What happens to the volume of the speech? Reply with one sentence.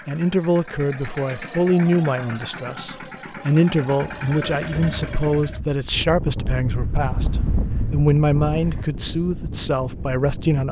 The volume of the speech stays about the same.